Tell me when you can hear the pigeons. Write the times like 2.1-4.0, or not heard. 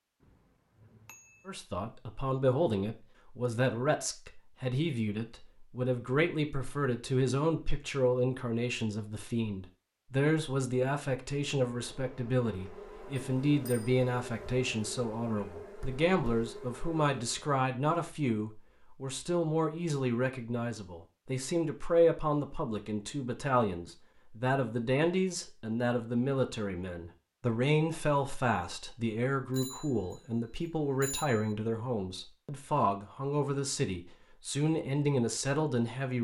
not heard.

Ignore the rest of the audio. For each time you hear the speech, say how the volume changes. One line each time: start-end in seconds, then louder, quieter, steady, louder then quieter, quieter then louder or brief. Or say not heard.
1.4-36.1 steady.